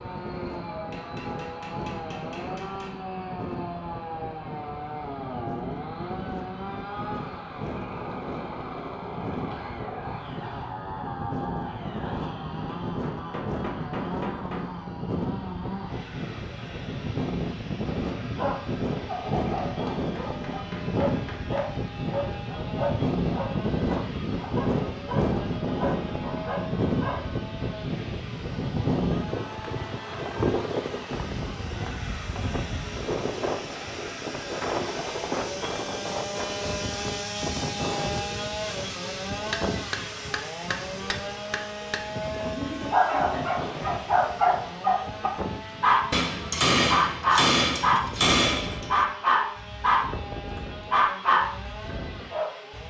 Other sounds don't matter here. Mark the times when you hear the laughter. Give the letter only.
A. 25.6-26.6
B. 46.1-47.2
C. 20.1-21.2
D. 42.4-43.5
D.